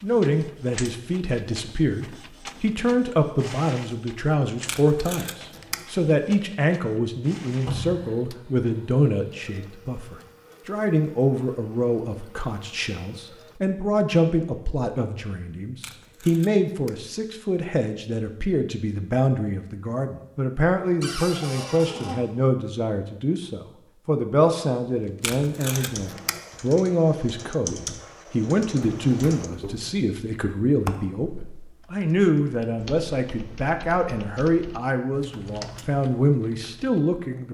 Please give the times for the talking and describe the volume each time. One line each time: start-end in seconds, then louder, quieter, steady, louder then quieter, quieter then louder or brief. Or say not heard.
0.0-37.4 steady.